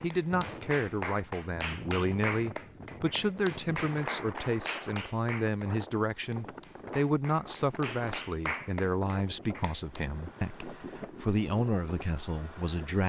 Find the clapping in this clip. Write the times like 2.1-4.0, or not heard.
0.0-10.1.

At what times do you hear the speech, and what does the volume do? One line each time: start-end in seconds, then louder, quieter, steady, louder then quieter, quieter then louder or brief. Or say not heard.
0.0-13.0 steady.